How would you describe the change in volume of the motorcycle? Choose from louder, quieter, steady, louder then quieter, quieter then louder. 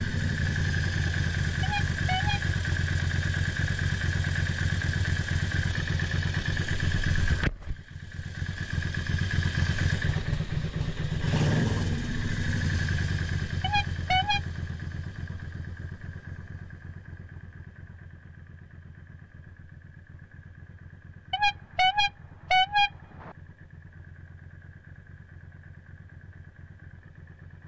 quieter.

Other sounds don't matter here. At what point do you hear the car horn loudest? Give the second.
23 s.